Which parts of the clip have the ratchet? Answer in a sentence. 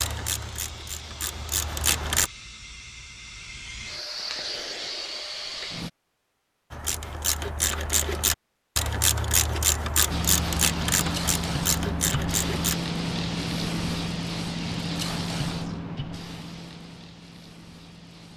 You can hear the ratchet from 0.0 to 2.3 s and from 6.7 to 12.8 s.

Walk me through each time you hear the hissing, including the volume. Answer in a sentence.
The hissing can be heard from 0.0 to 5.9 s, getting louder; and from 10.1 to 18.3 s, getting quieter.